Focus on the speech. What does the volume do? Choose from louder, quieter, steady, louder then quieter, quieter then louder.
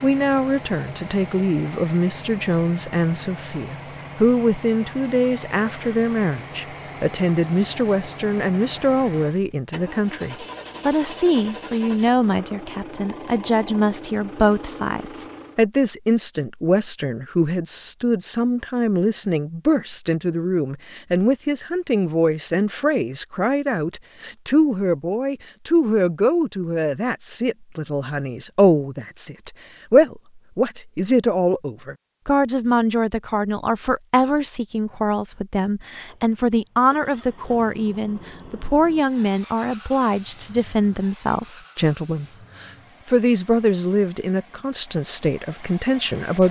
steady.